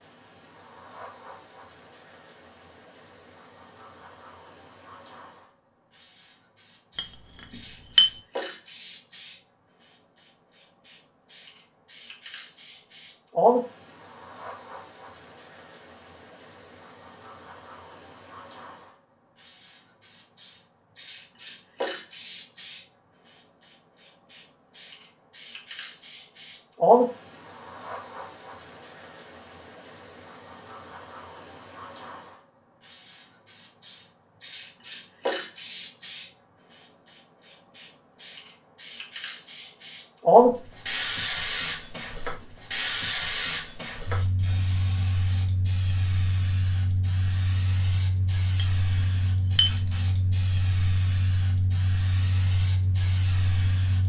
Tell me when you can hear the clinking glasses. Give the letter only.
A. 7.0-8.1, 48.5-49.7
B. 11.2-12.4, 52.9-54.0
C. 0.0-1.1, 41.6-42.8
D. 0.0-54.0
A.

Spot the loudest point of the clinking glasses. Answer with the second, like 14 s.
8 s.